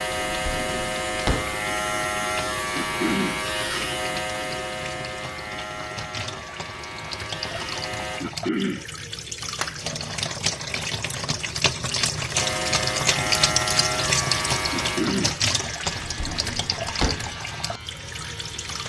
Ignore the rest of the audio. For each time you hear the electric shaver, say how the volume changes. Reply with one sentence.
The electric shaver can be heard from 0.0 to 8.2 s, getting quieter; and from 12.3 to 18.8 s, getting quieter.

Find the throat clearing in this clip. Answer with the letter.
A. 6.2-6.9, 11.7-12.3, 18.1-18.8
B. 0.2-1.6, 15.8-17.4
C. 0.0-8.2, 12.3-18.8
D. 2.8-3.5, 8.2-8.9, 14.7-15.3
D.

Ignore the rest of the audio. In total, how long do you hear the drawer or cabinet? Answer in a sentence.
You can hear the drawer or cabinet for 3 seconds altogether.